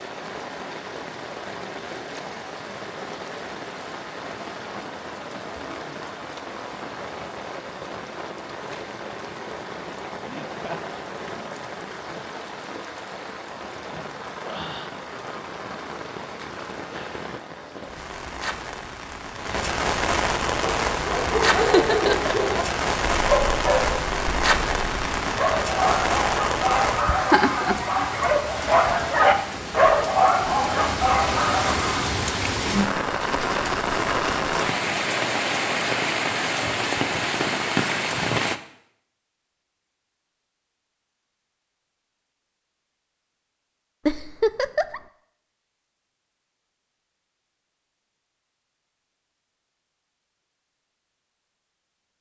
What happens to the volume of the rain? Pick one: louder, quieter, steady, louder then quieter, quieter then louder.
louder.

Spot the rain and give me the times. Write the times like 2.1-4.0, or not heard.
0.0-38.6.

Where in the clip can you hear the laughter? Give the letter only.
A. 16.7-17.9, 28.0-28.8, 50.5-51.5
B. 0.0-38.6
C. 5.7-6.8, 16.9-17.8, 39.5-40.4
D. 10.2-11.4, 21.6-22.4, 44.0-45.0
D.